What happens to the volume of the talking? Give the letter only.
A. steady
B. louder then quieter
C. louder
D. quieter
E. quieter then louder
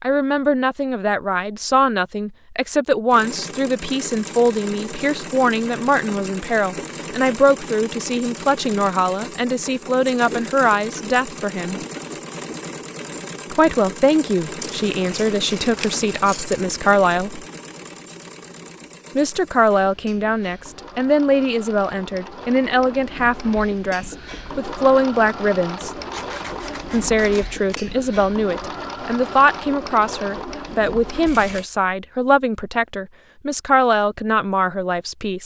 A.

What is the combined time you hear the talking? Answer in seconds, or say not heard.
31 s.